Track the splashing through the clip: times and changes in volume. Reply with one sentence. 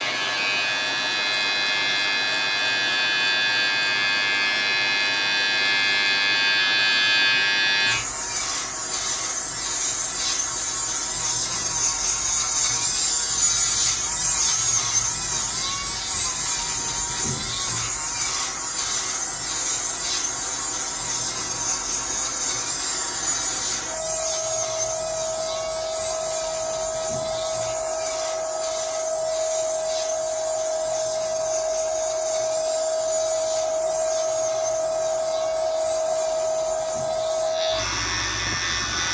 You can't hear the splashing here.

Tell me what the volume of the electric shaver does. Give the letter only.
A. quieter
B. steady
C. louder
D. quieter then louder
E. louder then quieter
A.